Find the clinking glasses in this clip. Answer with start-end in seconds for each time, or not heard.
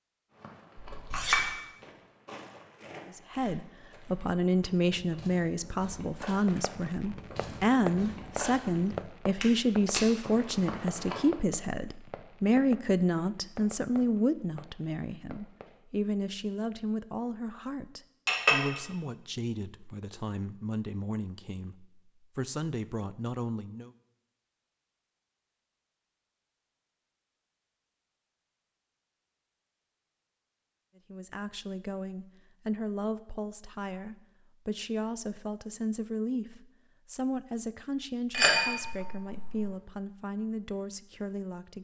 0.9-1.5, 18.2-18.8, 38.3-39.7.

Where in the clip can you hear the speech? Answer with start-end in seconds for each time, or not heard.
3.1-23.9, 31.1-41.7.